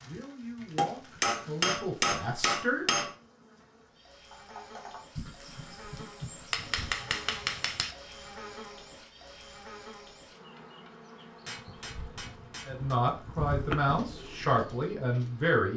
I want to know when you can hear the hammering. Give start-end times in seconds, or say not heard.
0.8-3.1, 6.5-8.0, 11.4-13.0.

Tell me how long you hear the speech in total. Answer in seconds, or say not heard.
6 s.